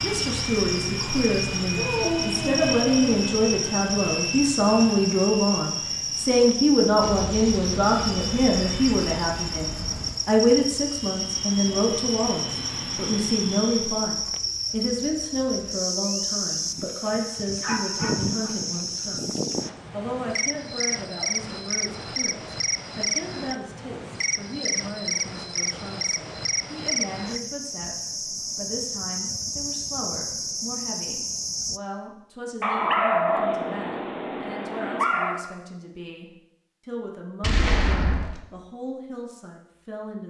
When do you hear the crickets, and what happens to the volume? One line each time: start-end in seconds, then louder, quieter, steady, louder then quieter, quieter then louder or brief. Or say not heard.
0.0-31.8 steady.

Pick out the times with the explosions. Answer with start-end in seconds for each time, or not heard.
7.0-10.2, 37.4-38.4.